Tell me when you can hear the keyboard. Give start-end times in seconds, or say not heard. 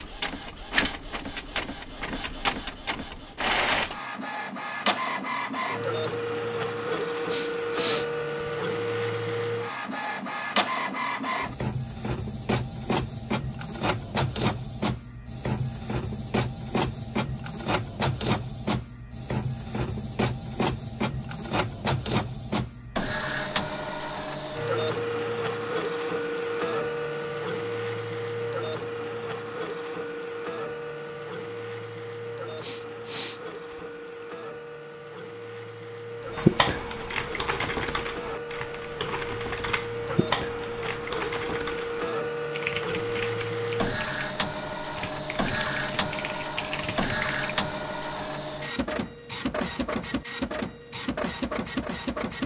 36.2-47.6.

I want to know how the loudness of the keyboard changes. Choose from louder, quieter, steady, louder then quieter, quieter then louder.
quieter.